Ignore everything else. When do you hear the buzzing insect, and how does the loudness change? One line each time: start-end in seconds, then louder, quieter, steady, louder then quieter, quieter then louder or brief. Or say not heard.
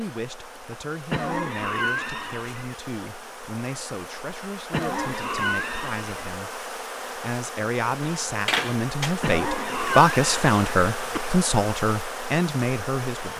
0.0-13.3 louder.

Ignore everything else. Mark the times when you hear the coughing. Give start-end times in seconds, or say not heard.
1.1-2.8, 4.7-6.4, 9.2-11.3.